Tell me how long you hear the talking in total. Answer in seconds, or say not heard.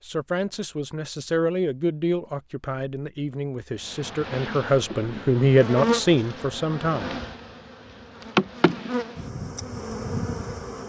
7 s.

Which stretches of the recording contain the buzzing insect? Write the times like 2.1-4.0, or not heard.
3.8-10.8.